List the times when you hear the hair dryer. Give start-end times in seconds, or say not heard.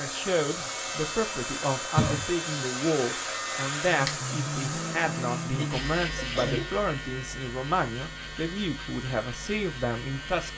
0.0-10.5.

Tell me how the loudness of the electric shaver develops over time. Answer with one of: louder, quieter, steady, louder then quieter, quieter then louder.
louder then quieter.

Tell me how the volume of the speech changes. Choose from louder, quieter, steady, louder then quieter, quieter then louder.
steady.